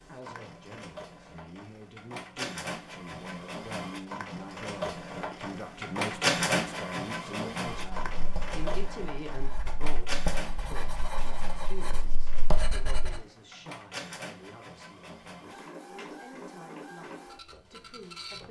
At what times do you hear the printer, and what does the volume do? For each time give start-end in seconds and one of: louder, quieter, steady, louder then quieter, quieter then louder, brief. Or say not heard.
0.0-18.4 louder then quieter.